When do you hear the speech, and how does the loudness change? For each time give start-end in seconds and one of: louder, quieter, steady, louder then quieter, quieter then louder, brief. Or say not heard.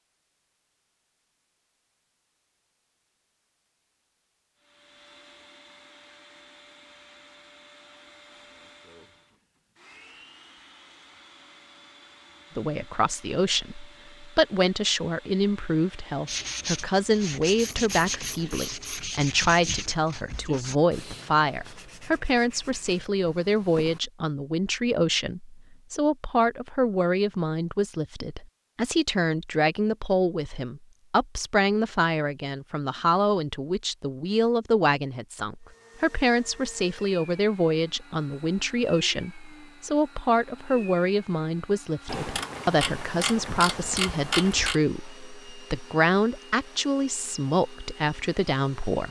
12.6-49.0 steady.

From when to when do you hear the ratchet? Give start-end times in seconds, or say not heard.
17.6-19.1, 42.0-44.8.